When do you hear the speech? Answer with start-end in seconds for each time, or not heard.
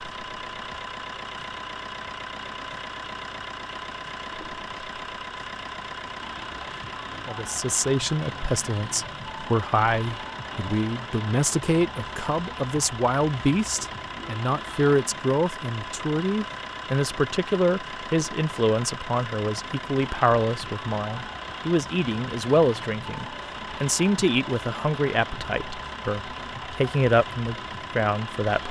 7.2-28.6.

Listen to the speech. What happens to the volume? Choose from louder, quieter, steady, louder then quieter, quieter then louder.
steady.